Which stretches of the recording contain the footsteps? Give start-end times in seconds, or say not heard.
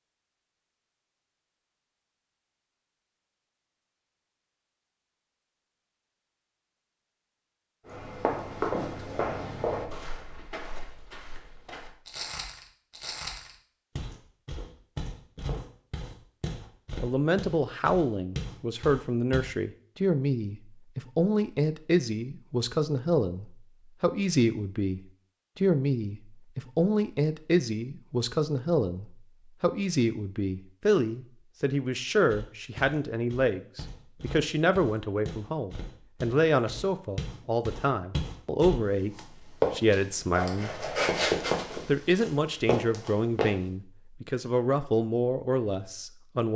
7.8-19.4, 32.2-43.5.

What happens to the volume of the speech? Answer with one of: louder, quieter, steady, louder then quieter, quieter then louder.
steady.